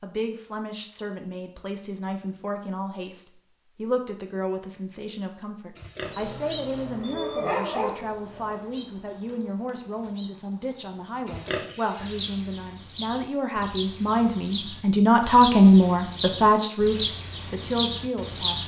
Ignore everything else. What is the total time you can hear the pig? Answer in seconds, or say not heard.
2 s.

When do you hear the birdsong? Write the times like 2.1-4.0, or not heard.
6.0-18.6.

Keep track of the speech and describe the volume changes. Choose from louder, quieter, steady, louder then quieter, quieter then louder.
louder.